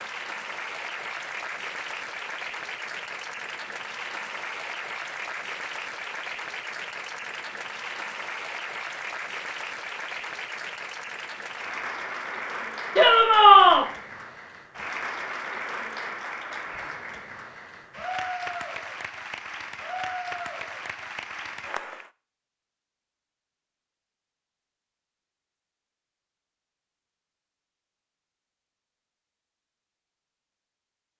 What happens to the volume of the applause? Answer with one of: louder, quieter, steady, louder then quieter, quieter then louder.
steady.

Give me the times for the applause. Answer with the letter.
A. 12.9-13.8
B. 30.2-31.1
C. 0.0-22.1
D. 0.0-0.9
C.